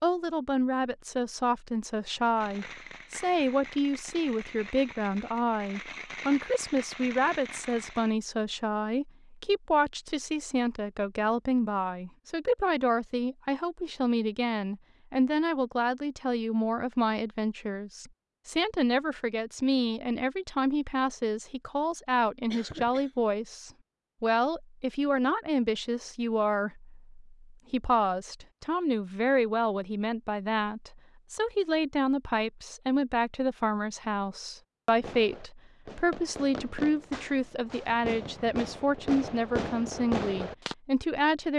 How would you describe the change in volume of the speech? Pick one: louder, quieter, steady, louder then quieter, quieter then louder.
steady.